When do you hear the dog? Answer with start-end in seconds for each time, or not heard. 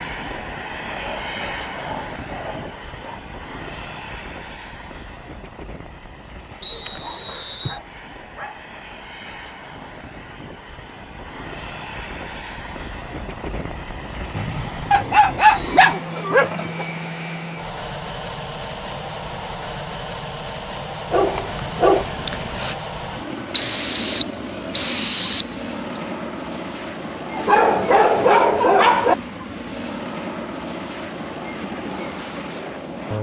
0.9-3.2, 7.0-8.7, 14.9-16.9, 21.1-22.8, 27.3-29.1.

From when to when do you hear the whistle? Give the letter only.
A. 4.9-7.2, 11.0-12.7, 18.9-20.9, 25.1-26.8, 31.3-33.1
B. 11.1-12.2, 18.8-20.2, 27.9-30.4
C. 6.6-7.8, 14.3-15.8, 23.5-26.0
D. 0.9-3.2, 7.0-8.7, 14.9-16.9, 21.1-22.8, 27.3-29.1
C.